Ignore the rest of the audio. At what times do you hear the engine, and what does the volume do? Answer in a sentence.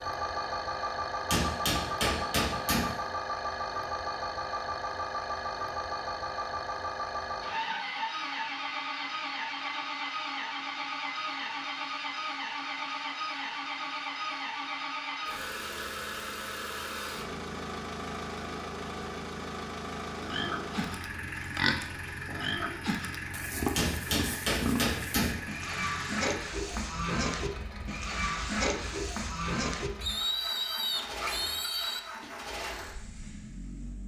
You can hear the engine from 0.0 to 34.0 s, getting quieter.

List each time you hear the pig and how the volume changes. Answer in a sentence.
The pig can be heard from 20.1 to 32.3 s, at a steady volume.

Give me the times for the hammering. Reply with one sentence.
You can hear the hammering from 1.3 to 3.0 s and from 23.8 to 25.4 s.